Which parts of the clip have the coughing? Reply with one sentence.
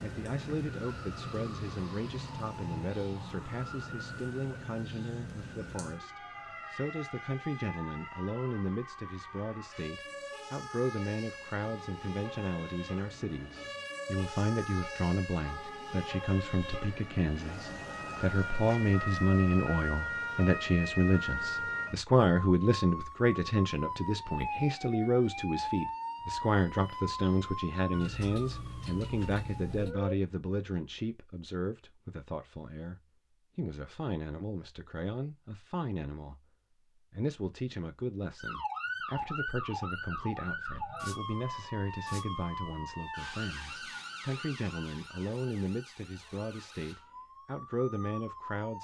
The coughing can't be heard in this clip.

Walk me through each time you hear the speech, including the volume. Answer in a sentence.
You can hear the speech from 0.0 to 48.7 s, getting louder then quieter.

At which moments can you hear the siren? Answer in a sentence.
You can hear the siren from 0.0 to 30.1 s and from 38.4 to 48.7 s.